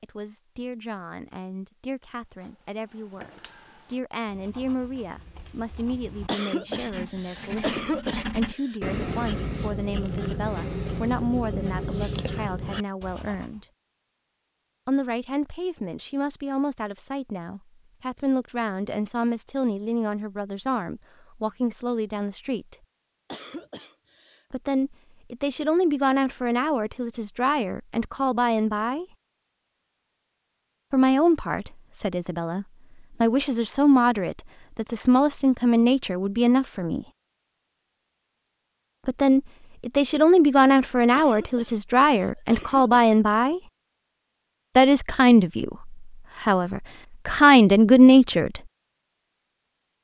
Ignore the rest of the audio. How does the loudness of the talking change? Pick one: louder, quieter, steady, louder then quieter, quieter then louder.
louder.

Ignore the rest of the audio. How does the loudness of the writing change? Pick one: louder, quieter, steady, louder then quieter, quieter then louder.
louder.